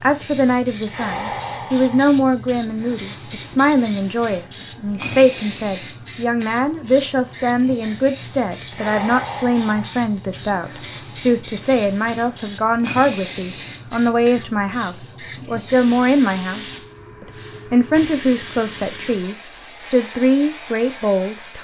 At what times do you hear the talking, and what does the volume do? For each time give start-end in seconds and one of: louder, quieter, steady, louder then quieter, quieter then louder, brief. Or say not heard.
0.0-21.5 steady.